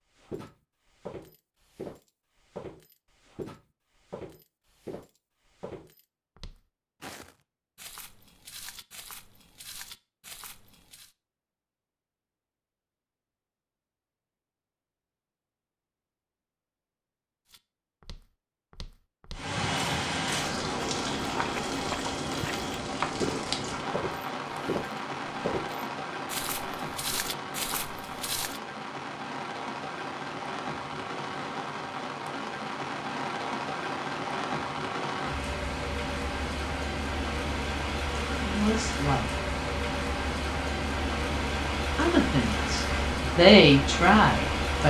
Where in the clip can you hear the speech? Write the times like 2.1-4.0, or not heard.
38.4-39.3, 42.0-44.8.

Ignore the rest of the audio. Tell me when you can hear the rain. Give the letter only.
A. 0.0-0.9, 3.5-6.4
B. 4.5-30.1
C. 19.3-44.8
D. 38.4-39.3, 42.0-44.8
C.